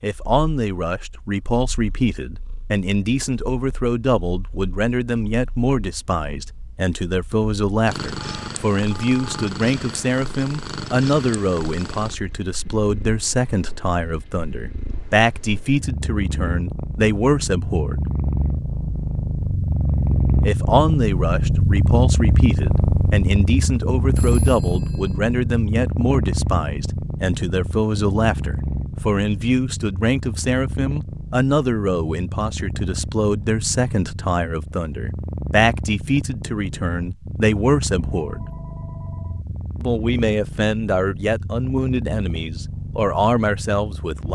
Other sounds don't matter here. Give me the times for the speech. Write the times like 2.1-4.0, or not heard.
0.0-18.1, 20.4-38.5, 39.8-44.2.